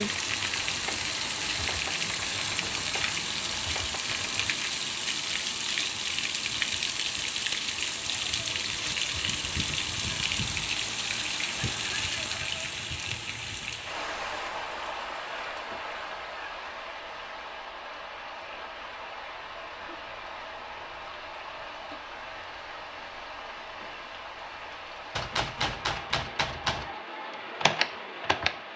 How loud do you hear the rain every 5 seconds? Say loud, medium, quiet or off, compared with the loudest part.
loud, loud, loud, medium, medium, medium.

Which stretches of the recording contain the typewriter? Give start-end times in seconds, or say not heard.
0.0-4.5, 25.1-28.5.